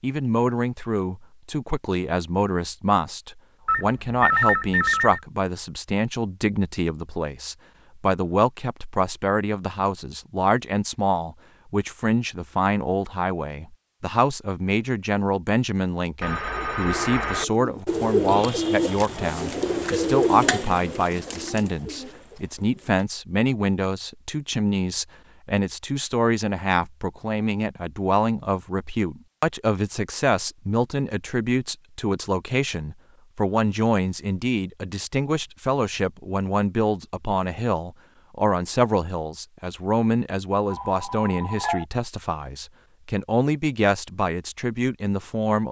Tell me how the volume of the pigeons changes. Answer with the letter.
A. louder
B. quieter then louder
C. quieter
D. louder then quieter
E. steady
D.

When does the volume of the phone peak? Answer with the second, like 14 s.
4 s.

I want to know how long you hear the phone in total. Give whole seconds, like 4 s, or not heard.
4 s.